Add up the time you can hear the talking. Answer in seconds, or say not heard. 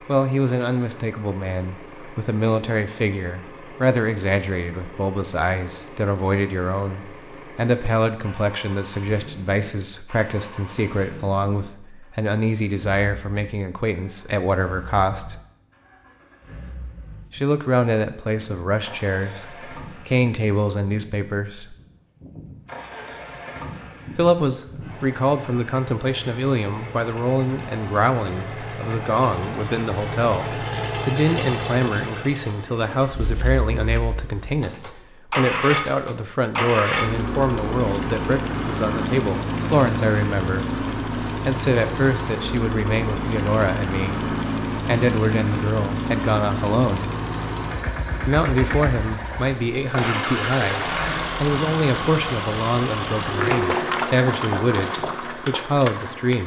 51 s.